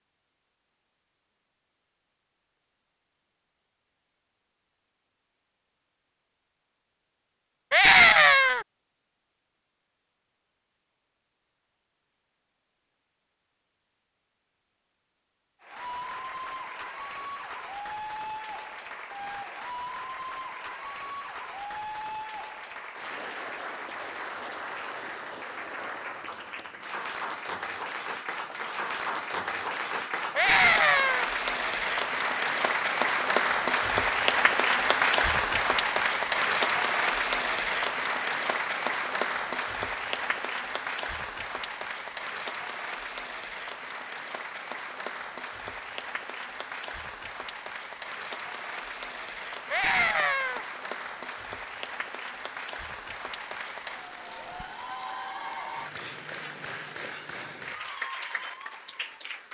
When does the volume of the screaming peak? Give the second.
8 s.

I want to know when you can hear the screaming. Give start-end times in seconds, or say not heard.
7.7-8.7, 30.4-31.3, 49.7-50.6.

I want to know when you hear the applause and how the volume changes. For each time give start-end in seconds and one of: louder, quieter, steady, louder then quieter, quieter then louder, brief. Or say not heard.
15.6-59.5 louder then quieter.